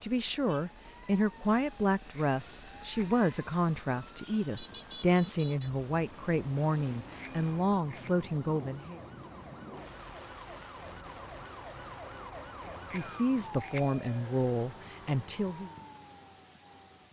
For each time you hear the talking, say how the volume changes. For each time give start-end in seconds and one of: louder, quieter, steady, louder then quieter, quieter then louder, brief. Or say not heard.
0.0-9.0 steady
12.9-15.7 brief.